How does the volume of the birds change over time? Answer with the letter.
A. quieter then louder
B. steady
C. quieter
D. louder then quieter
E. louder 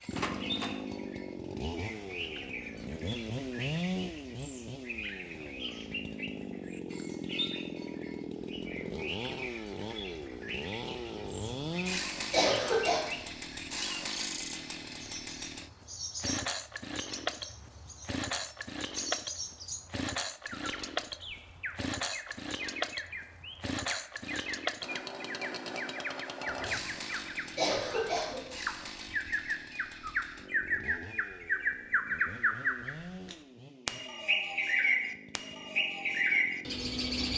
E.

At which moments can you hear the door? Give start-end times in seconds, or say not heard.
0.1-0.8.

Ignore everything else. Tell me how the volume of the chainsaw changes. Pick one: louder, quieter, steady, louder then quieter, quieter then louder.
quieter.